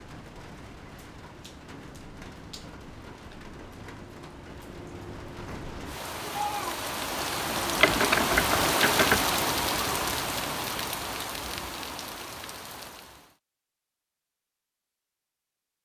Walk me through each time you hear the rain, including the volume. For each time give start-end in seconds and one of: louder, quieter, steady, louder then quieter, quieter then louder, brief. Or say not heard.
0.0-13.3 louder then quieter.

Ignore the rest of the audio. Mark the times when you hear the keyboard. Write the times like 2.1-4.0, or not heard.
7.8-9.3.